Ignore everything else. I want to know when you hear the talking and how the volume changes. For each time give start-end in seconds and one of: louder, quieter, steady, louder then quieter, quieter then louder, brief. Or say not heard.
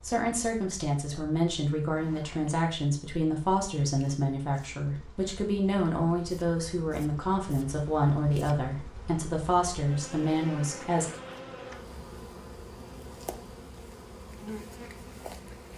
0.0-11.1 steady.